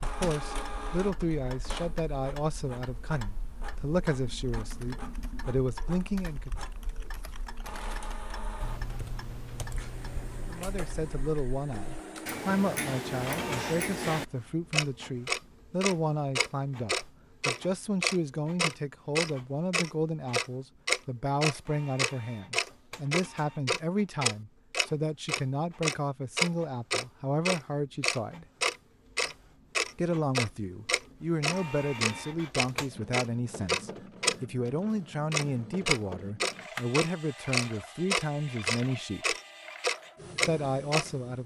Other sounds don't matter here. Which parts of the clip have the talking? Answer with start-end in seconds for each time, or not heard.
0.0-6.5, 10.4-28.4, 29.9-39.4, 40.5-41.4.